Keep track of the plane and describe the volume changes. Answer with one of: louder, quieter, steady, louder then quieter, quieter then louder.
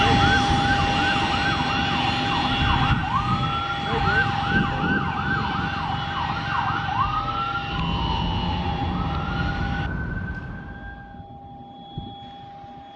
quieter.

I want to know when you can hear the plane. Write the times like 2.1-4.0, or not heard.
0.0-12.9.